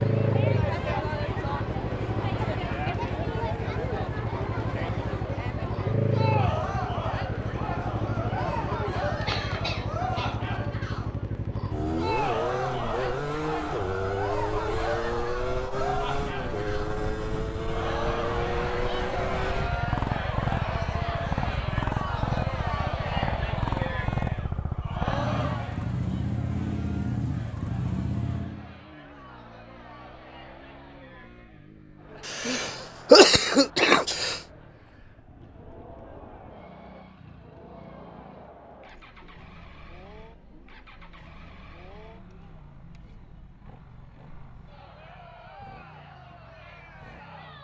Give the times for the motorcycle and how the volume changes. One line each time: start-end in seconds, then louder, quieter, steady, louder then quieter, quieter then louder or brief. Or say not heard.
0.0-47.5 quieter.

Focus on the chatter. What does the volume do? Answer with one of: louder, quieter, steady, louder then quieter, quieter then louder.
quieter.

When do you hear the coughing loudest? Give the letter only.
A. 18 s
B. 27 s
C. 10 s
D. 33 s
D.